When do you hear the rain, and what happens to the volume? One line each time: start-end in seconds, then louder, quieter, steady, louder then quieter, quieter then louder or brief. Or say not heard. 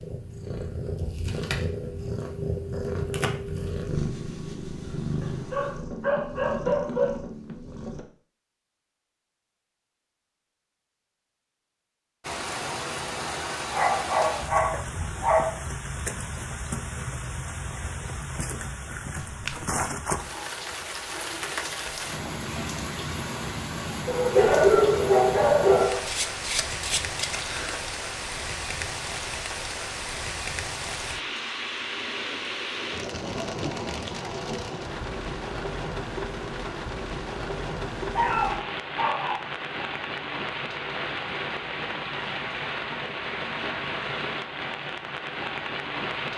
12.2-46.3 steady.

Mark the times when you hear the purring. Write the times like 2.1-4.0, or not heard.
0.0-8.1.